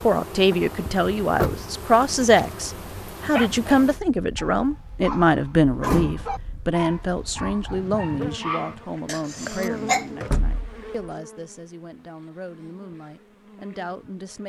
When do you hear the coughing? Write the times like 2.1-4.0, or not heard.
9.1-10.1.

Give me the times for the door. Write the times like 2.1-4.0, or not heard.
0.8-1.6, 5.8-6.5, 10.2-10.9.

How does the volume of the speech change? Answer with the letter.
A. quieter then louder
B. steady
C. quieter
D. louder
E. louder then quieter
C.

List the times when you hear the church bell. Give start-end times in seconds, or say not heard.
not heard.